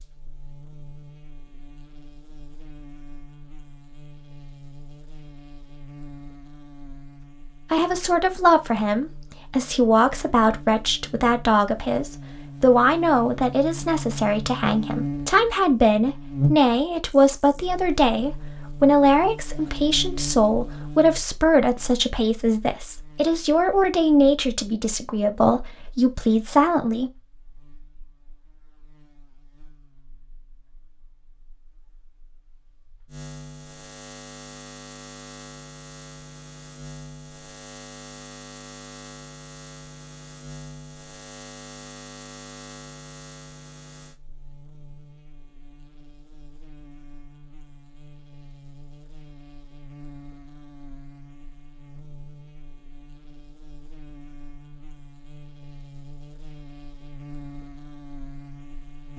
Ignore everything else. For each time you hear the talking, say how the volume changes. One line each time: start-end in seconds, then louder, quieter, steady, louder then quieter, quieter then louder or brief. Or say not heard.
7.7-27.1 steady.